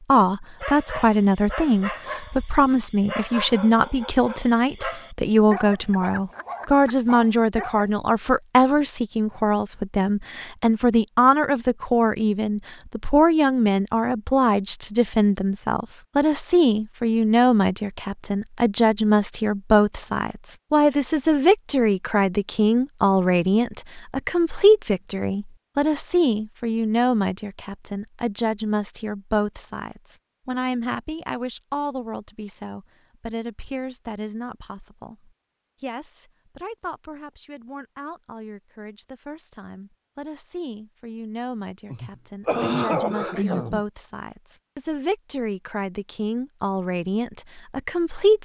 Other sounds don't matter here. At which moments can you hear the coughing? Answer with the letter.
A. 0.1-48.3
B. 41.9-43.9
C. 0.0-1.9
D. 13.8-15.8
B.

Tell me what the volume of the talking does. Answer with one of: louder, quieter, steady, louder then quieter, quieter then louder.
quieter.